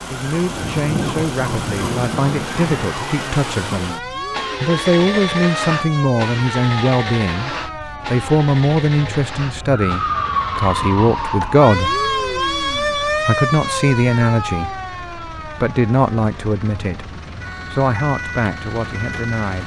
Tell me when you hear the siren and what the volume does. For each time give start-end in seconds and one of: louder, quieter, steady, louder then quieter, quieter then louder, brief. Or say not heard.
0.0-19.6 louder then quieter.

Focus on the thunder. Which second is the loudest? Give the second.
1 s.